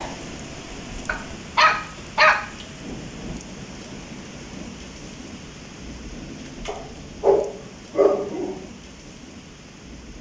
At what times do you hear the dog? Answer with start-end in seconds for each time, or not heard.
1.1-2.6, 6.7-8.6.